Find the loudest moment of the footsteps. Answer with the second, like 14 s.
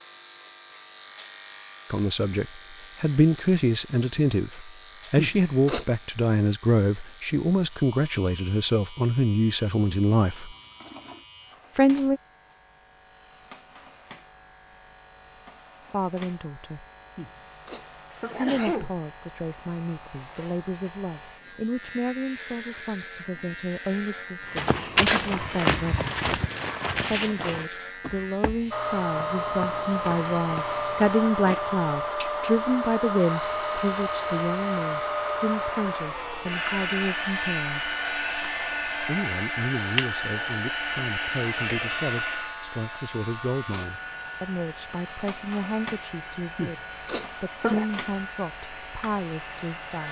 25 s.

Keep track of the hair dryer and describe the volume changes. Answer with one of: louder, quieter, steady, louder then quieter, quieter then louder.
quieter.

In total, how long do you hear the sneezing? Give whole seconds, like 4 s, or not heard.
4 s.